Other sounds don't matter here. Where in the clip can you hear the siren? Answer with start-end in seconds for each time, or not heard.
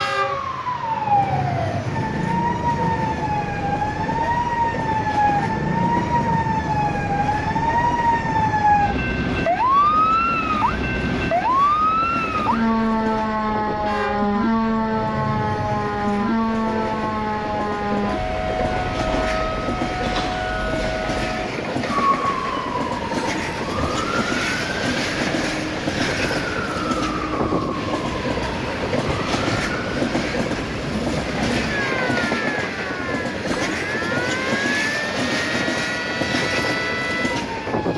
0.0-37.9.